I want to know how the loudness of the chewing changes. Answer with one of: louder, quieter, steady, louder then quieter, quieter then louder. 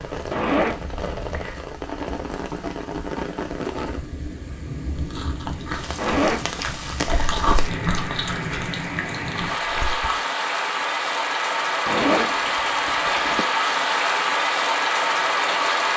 louder then quieter.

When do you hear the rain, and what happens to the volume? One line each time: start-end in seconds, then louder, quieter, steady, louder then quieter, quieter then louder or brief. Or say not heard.
0.0-15.9 louder.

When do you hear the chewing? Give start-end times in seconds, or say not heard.
4.9-10.2.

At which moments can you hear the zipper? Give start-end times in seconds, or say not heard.
0.3-1.6, 6.0-7.5, 11.8-13.4.